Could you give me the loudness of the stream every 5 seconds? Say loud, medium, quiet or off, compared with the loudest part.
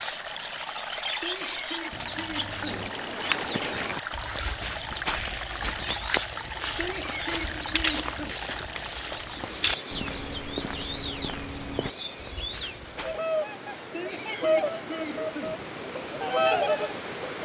loud, loud, medium, loud.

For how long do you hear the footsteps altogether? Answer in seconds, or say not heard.
11 s.